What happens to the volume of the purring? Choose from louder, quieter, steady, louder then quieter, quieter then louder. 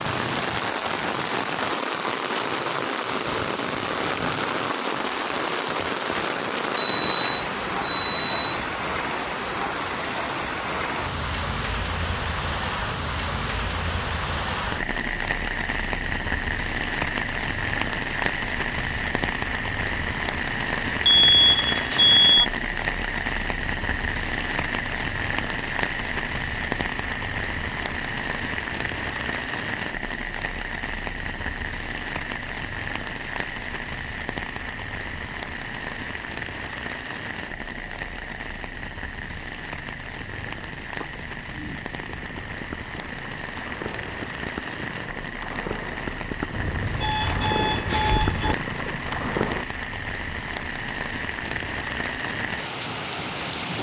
louder.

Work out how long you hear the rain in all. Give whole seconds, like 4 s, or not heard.
54 s.